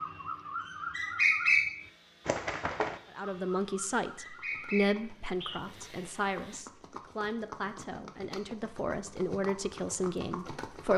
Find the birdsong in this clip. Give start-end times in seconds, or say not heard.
0.0-5.6.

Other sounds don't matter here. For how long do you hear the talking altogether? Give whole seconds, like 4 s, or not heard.
8 s.